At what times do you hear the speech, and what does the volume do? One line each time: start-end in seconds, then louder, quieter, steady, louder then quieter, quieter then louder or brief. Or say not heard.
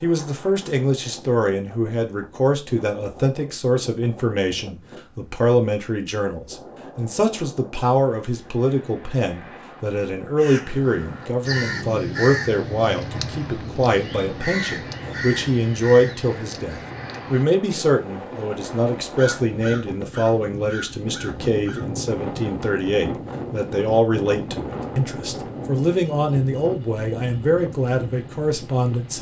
0.0-29.1 steady.